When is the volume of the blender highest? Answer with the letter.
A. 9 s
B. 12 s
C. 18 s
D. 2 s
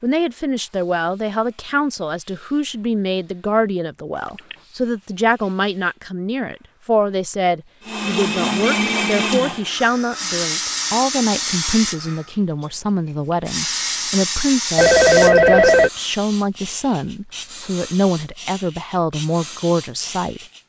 A.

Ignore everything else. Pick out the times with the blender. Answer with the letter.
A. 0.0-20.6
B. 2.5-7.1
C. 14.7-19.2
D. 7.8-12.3
D.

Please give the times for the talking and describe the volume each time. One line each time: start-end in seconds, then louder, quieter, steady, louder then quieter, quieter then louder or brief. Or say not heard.
0.0-20.6 steady.